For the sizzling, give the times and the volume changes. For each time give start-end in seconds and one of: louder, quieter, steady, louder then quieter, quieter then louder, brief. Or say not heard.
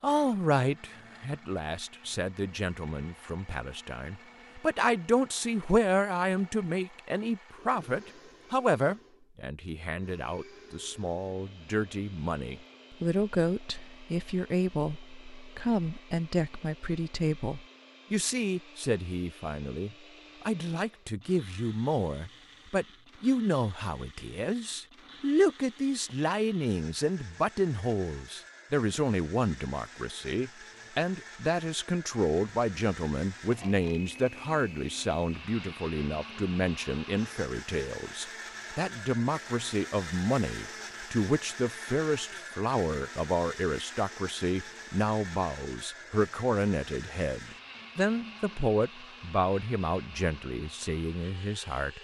not heard.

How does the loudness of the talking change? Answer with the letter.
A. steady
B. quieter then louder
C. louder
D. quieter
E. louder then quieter
A.